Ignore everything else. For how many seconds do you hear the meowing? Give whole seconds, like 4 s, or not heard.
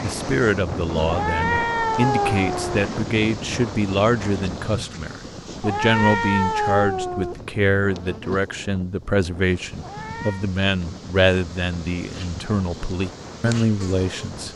4 s.